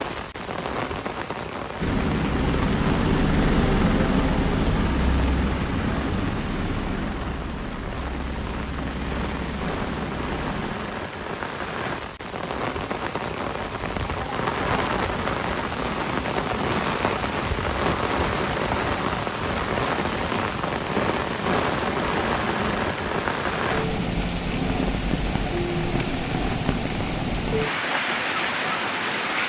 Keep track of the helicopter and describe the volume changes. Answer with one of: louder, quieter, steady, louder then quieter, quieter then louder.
quieter.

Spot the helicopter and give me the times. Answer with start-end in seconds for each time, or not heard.
1.8-10.8.